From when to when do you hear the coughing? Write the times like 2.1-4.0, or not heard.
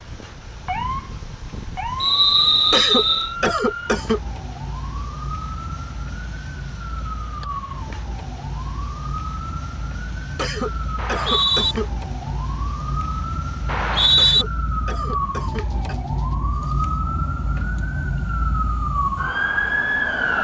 2.7-4.2, 10.3-11.9, 14.2-15.9.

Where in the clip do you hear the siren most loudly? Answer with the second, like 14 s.
20 s.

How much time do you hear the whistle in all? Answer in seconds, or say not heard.
3 s.